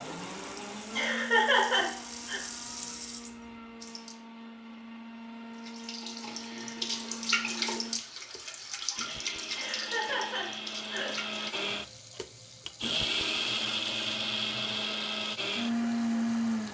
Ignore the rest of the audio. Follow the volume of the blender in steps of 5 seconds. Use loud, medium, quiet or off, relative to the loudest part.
quiet, quiet, loud, loud.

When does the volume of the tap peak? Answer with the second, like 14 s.
7 s.